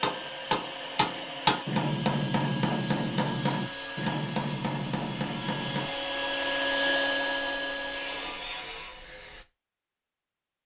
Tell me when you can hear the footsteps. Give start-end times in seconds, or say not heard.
not heard.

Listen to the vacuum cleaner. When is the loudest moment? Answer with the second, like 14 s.
7 s.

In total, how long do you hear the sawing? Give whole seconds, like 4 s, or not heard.
8 s.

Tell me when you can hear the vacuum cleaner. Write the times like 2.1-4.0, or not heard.
0.0-8.7.